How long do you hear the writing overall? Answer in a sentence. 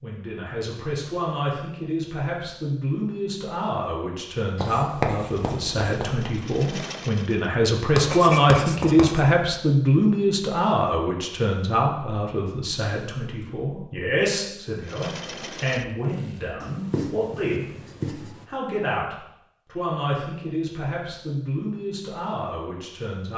You can hear the writing for 5 seconds altogether.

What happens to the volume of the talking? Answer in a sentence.
The loudness of the talking goes up, then down.